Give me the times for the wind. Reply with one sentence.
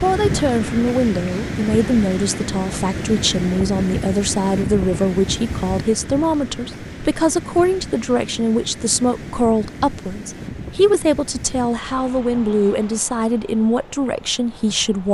You can hear the wind from 0.0 to 15.0 s.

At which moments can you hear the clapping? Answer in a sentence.
The clapping can't be heard in this clip.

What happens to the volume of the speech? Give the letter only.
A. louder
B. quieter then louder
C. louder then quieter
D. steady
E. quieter
D.